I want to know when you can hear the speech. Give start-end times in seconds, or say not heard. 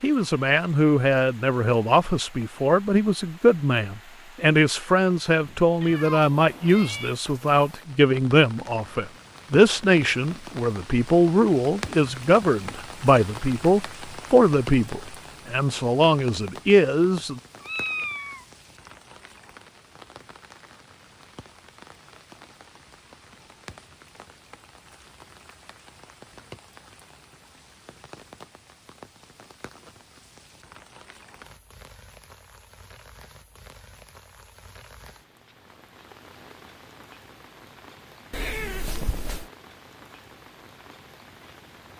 0.0-17.4.